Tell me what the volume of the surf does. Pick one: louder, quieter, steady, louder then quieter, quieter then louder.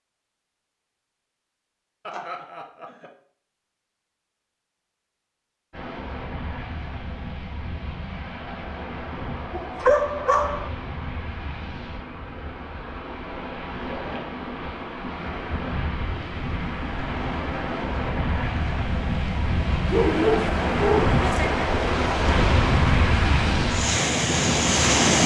louder.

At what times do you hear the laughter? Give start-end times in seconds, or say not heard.
2.0-3.1, 21.1-21.6.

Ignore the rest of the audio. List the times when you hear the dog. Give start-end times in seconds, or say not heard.
9.5-10.7, 19.9-21.4.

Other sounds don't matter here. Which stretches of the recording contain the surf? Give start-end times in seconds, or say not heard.
5.7-25.2.